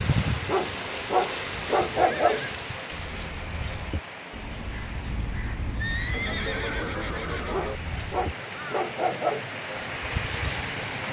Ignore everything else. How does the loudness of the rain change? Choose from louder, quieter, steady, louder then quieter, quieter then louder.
quieter then louder.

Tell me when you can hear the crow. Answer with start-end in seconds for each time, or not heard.
2.9-8.8.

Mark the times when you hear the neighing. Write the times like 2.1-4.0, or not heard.
1.9-2.5, 5.8-7.8.